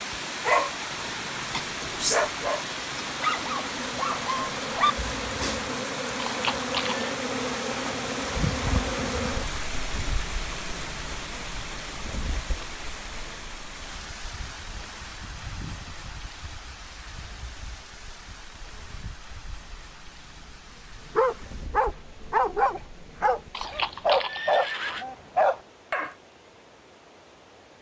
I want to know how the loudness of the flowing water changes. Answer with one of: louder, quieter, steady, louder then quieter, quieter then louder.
quieter.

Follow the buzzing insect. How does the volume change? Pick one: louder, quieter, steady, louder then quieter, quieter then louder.
quieter.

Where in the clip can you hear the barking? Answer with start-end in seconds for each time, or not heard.
0.5-5.7, 21.1-26.1.